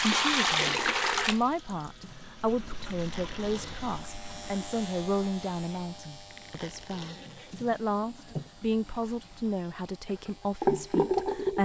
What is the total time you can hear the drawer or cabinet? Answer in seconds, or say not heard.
2 s.